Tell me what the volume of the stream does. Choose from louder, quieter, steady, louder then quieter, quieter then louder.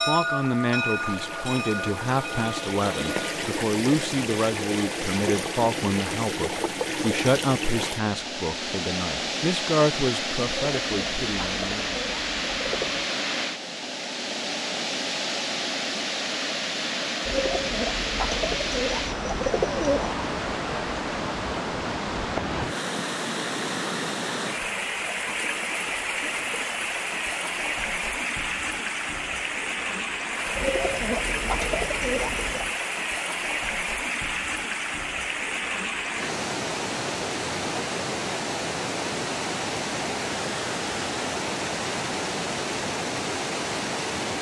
steady.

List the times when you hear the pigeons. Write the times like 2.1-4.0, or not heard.
10.4-13.1, 17.2-20.2, 30.6-32.8.